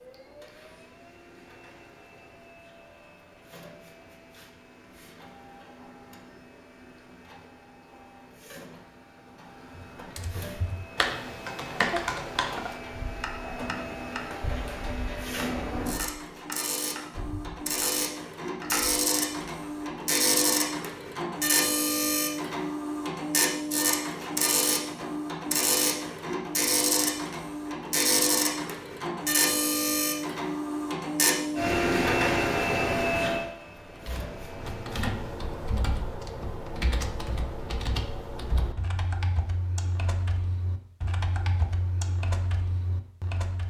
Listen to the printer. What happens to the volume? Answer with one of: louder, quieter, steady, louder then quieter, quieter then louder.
louder.